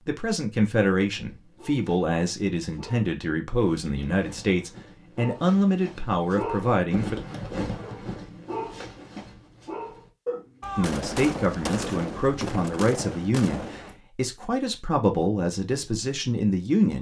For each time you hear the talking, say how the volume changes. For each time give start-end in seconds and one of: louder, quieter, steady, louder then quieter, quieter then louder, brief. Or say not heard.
0.1-7.2 steady
10.8-16.9 steady.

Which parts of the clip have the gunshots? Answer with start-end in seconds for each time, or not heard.
10.6-14.0.